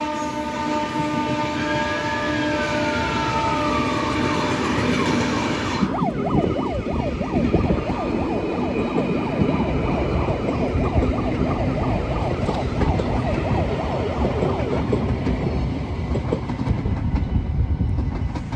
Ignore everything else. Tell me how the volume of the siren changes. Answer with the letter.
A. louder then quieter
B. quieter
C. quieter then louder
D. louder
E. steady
E.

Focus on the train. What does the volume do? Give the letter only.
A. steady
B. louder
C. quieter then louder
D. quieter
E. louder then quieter
A.